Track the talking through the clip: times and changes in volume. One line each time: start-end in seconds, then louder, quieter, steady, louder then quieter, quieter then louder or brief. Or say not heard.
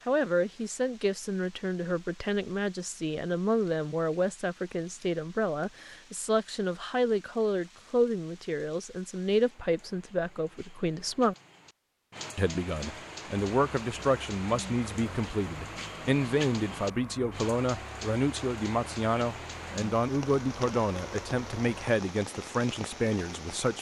0.1-11.3 steady
12.3-23.7 steady.